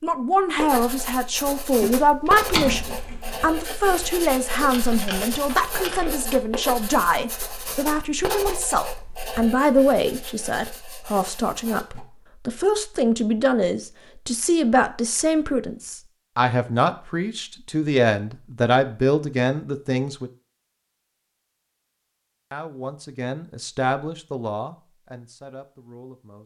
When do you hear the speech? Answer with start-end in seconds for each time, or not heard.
0.0-20.3, 22.5-26.4.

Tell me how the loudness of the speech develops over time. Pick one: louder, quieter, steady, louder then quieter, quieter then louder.
quieter.